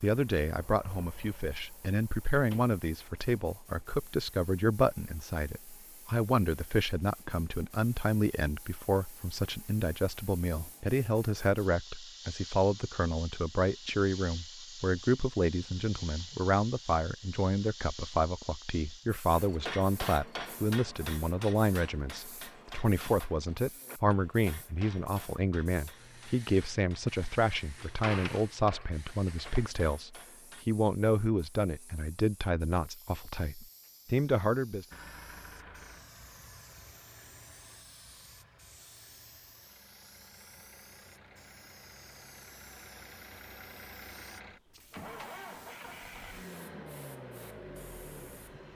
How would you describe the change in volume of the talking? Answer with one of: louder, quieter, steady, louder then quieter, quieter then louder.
steady.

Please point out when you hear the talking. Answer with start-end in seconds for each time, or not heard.
0.0-34.9.